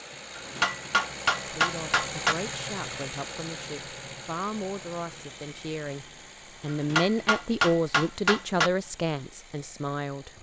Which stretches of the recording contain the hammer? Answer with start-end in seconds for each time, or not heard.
0.3-2.4, 6.7-8.7.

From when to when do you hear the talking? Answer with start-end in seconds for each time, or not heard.
1.4-10.3.